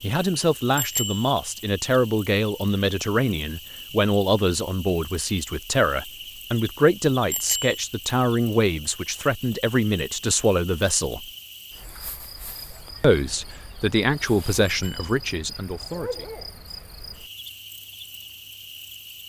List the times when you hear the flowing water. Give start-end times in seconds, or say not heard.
not heard.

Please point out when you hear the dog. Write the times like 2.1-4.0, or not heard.
15.9-16.5.